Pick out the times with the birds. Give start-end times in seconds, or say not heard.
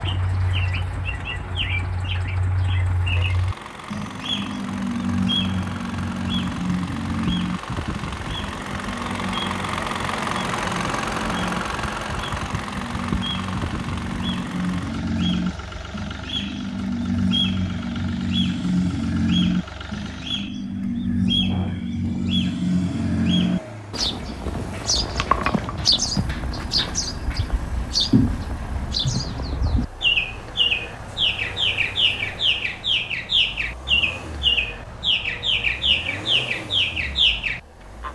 0.0-38.1.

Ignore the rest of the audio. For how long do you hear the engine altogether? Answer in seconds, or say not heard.
38 s.